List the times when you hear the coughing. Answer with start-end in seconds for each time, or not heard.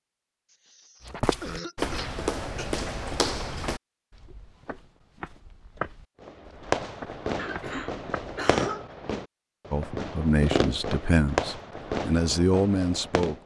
0.5-2.6, 7.3-8.9.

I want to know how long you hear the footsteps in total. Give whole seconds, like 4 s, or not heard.
7 s.